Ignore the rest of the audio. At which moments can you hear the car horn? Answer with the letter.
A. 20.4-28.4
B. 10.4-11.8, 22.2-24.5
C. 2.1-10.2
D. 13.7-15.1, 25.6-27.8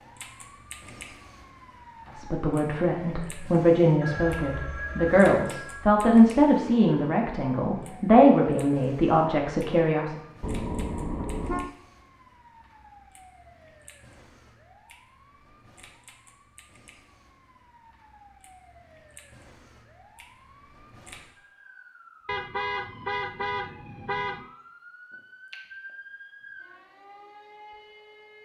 B.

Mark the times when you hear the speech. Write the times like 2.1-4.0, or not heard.
2.1-10.2.